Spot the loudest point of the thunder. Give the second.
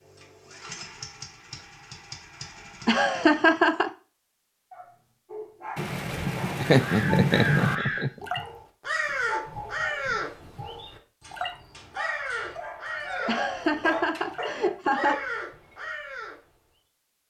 7 s.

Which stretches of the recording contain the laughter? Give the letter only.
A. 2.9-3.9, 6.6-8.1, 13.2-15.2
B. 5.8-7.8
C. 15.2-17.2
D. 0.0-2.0
A.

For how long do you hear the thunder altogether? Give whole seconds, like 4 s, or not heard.
2 s.